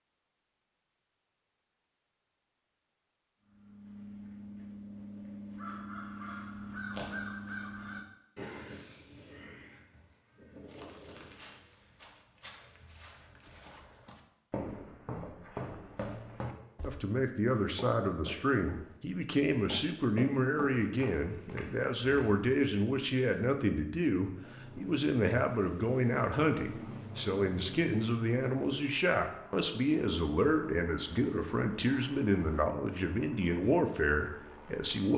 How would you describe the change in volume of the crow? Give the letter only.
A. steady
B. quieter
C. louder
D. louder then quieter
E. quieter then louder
D.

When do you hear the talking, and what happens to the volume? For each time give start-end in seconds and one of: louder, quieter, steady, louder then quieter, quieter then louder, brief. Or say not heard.
16.9-35.1 steady.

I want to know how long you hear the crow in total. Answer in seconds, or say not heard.
8 s.